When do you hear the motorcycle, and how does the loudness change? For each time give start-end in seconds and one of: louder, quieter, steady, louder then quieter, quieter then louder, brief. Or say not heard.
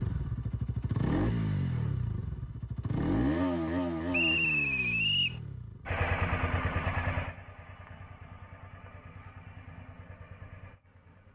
0.0-11.3 quieter.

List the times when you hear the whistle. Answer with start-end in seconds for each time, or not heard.
4.1-5.4.